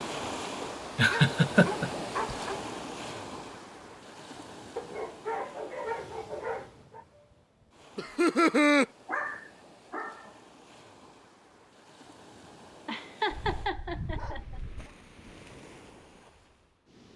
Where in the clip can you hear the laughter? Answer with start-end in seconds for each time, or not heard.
0.9-2.4, 8.0-8.8, 12.8-14.4.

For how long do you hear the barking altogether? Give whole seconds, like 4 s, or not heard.
7 s.